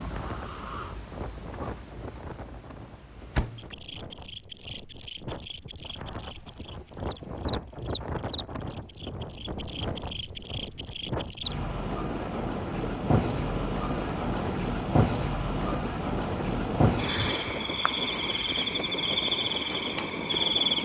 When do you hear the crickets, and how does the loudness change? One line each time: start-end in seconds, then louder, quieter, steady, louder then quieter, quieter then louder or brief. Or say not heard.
0.0-20.7 quieter then louder.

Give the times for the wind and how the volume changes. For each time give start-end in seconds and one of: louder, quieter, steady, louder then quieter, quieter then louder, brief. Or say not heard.
0.0-20.7 louder.